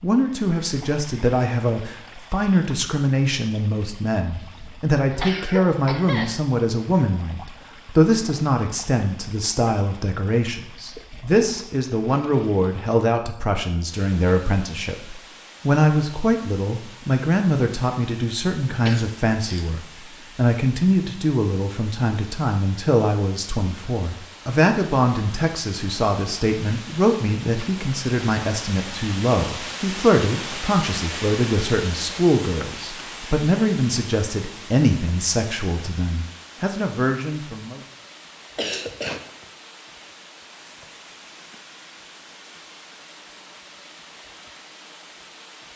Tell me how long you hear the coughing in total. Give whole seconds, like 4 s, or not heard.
3 s.